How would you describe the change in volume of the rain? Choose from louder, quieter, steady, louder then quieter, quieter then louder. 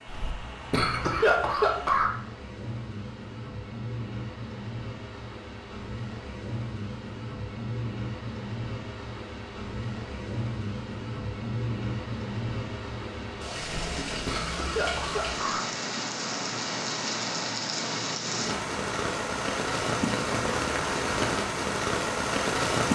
louder.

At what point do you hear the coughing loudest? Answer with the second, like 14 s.
1 s.